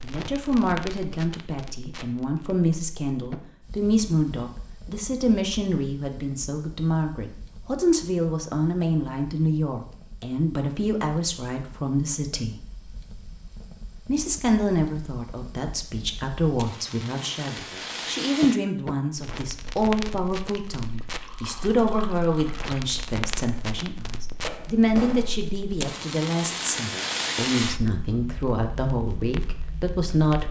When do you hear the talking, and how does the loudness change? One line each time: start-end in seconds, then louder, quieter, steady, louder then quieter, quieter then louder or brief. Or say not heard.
0.0-12.6 steady
14.1-30.4 steady.